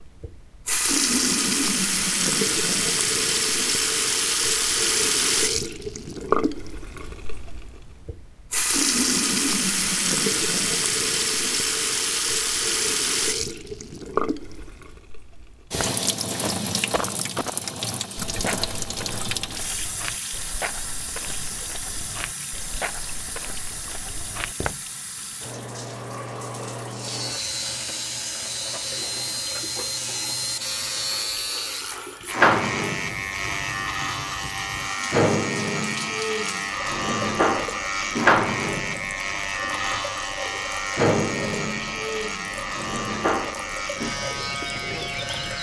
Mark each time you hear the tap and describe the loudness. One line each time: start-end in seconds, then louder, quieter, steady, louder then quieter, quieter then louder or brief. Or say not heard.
0.0-45.5 quieter.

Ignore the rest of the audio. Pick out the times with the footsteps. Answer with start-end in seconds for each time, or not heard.
15.7-24.9.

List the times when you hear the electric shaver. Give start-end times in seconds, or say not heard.
26.9-45.5.